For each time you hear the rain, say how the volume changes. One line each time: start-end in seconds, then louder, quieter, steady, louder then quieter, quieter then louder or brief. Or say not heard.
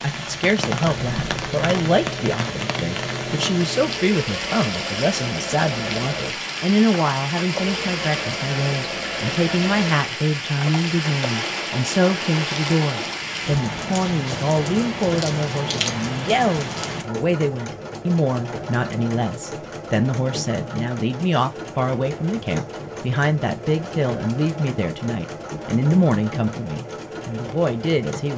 0.0-17.1 steady.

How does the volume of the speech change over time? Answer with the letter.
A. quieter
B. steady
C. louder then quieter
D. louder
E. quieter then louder
B.